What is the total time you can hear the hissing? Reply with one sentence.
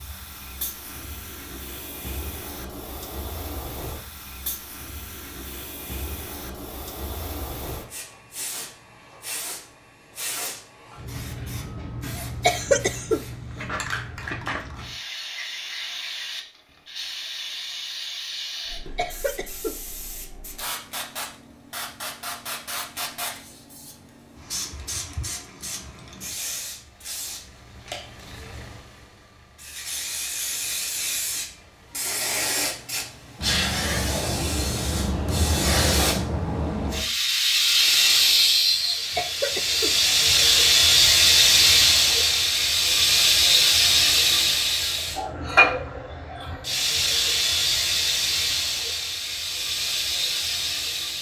The hissing can be heard for 51 seconds in total.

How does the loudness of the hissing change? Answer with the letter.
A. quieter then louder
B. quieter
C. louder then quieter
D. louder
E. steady
D.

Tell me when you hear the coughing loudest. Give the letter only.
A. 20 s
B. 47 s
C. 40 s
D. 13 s
D.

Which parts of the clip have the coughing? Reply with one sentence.
The coughing can be heard from 12.2 to 13.2 s, from 18.6 to 19.8 s and from 38.9 to 40.0 s.